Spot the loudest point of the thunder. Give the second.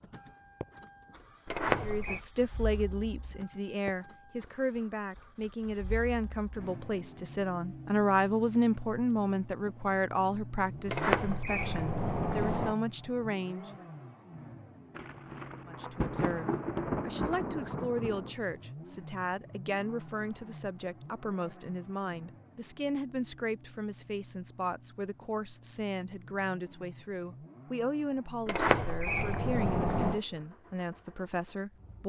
17 s.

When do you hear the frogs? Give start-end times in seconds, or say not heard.
not heard.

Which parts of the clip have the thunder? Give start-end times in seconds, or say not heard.
14.9-18.4.